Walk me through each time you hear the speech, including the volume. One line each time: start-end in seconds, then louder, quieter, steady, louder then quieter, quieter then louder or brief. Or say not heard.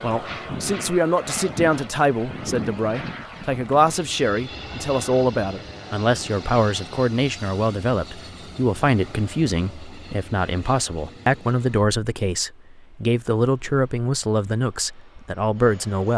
0.0-16.1 steady.